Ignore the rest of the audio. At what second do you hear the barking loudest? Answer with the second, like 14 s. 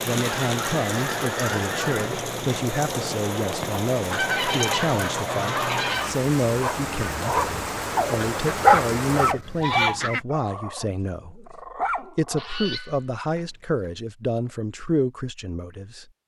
9 s.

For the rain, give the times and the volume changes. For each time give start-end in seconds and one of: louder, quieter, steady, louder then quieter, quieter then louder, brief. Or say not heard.
0.0-9.3 steady.